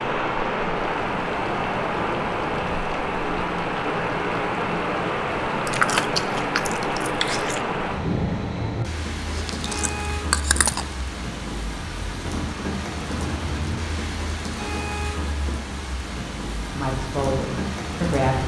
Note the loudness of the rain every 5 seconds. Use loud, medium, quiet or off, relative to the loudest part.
loud, loud, medium, medium.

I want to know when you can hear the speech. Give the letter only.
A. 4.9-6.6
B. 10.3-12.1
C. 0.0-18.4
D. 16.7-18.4
D.